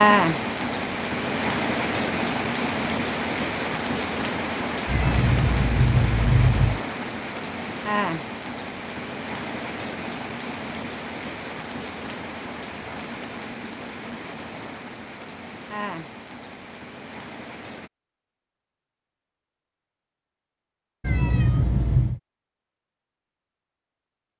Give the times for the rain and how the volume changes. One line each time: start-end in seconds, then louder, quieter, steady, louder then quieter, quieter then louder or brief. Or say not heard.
0.0-17.9 quieter.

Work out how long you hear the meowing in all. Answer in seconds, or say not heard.
3 s.